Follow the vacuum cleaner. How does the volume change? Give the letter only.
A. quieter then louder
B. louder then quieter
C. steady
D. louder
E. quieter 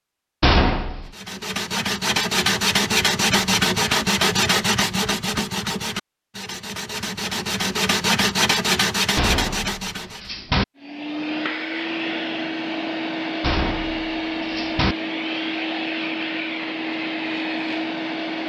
C.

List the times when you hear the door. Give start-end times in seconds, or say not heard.
0.4-1.1, 9.2-10.7, 13.4-14.9.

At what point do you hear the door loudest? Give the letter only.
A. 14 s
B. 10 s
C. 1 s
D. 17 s
C.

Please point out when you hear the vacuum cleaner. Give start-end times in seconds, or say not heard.
10.8-18.4.